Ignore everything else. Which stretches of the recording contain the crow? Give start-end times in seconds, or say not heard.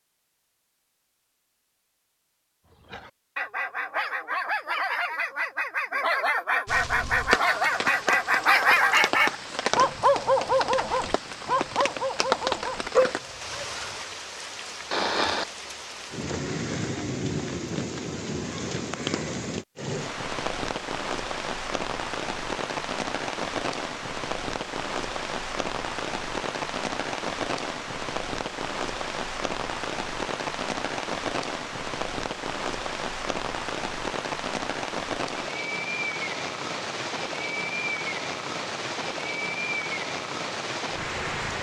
not heard.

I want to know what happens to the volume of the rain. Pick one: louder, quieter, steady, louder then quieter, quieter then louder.
steady.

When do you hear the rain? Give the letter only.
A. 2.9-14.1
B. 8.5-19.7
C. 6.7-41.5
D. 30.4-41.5
C.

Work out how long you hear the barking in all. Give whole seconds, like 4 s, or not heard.
11 s.